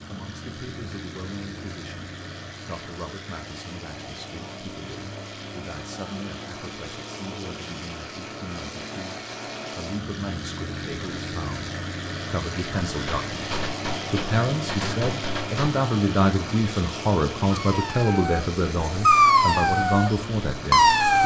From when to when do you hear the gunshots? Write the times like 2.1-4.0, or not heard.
12.8-15.8.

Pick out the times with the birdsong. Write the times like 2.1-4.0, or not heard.
not heard.